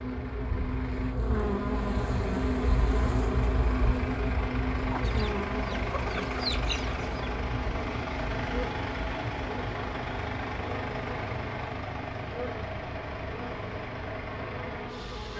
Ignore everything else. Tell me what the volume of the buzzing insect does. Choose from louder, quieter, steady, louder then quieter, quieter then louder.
quieter.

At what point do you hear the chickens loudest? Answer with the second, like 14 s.
7 s.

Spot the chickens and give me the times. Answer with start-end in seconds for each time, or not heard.
4.9-7.2.